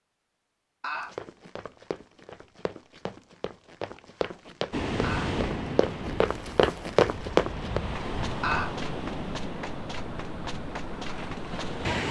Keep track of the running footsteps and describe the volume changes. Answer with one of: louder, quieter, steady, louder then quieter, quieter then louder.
louder then quieter.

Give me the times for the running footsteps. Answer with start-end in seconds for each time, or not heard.
0.9-11.8.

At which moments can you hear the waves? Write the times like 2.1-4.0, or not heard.
4.7-12.0.